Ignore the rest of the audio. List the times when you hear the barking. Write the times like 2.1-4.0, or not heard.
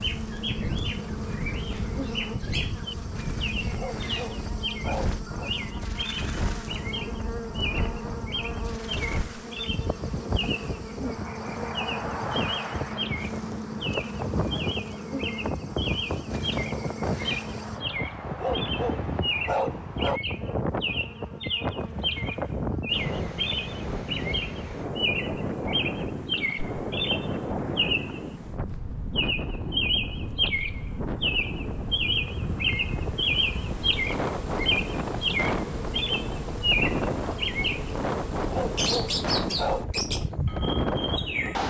3.6-5.5, 18.3-20.2, 38.4-39.9.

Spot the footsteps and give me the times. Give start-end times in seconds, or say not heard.
not heard.